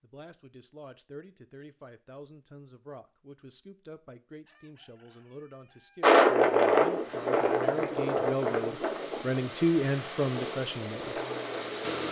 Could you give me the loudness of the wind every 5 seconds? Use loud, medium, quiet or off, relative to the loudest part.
off, loud, quiet.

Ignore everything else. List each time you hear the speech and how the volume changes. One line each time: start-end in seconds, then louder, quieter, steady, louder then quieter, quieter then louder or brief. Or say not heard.
0.0-11.2 louder.